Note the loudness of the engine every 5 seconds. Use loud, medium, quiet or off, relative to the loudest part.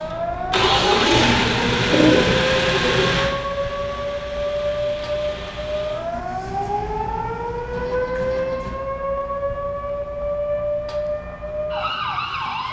loud, quiet, off.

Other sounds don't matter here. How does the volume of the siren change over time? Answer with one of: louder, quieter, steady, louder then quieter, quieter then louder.
steady.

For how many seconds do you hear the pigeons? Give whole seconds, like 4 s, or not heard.
3 s.